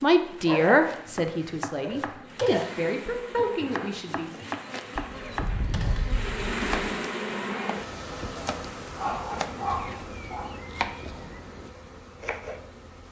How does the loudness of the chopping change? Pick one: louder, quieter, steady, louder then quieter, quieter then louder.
steady.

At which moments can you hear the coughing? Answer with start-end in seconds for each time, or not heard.
not heard.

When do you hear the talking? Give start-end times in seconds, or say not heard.
0.0-4.3.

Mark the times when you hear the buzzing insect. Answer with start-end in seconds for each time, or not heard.
0.0-13.0.